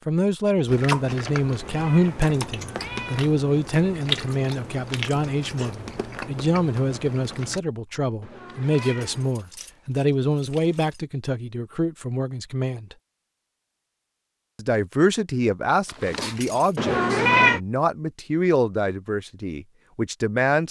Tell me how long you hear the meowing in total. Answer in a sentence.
The meowing can be heard for 4 seconds in total.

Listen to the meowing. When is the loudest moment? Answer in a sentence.
The loudest moment of the meowing is at 17 seconds.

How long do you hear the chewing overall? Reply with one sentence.
You can hear the chewing for 7 seconds altogether.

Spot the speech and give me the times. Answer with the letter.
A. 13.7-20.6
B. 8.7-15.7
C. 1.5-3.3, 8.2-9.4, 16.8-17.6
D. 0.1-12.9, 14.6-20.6
D.